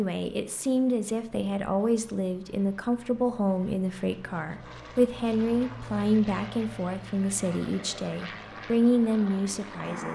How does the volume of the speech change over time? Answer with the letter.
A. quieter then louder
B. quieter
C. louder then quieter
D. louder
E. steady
E.